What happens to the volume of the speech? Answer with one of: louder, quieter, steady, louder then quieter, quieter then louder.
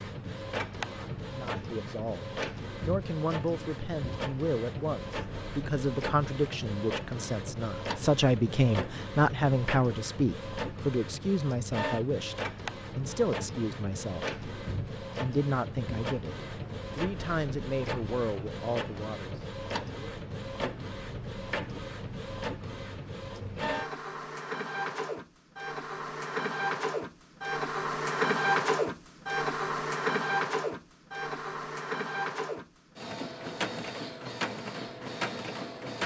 louder then quieter.